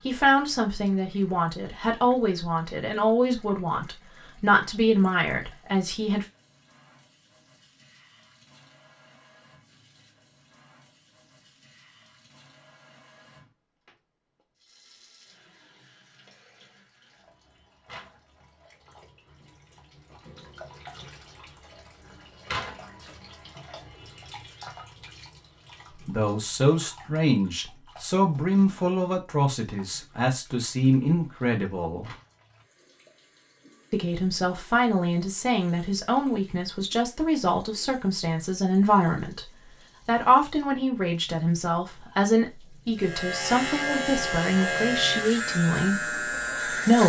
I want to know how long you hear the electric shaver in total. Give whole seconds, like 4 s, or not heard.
4 s.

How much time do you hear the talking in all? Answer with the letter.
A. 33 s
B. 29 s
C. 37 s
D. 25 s
D.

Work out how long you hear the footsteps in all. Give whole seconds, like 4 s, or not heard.
not heard.